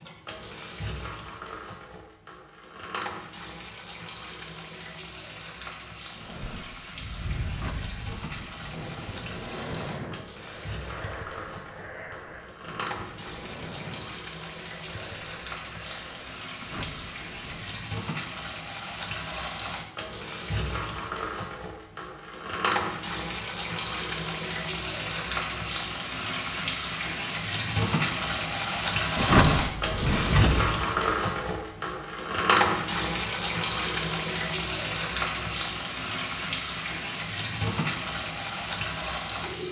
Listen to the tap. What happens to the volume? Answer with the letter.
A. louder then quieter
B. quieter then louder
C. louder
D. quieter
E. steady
C.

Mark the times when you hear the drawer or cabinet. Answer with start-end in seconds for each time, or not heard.
7.5-8.9, 16.6-17.9, 29.1-30.8.